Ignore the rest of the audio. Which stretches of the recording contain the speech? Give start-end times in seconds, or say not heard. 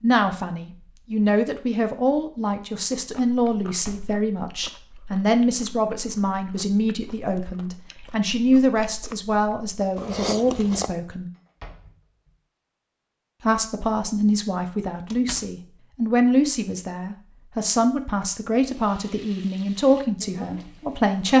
0.0-11.3, 13.4-21.3.